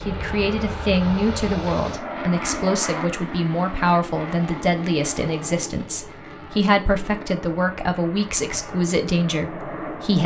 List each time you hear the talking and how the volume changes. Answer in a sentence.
The talking can be heard from 0.1 to 10.2 s, at a steady volume.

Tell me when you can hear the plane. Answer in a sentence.
You can hear the plane from 0.0 to 10.2 s.